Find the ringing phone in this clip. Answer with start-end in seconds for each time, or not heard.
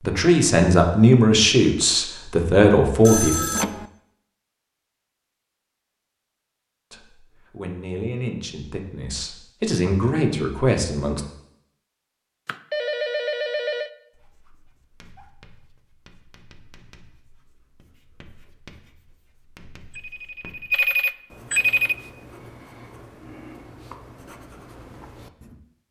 3.0-3.9, 12.4-13.9, 19.9-21.9.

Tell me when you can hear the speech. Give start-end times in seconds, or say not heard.
0.0-3.3, 6.9-11.2.